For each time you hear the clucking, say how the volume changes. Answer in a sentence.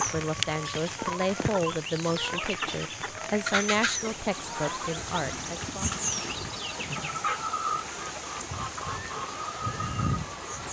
The clucking can be heard from 0.0 to 10.6 s, at a steady volume.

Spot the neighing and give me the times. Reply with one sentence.
You can't hear the neighing here.